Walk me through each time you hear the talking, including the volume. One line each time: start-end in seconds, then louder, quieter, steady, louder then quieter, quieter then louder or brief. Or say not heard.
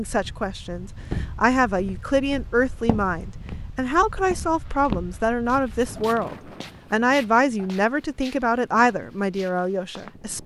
0.0-10.4 steady.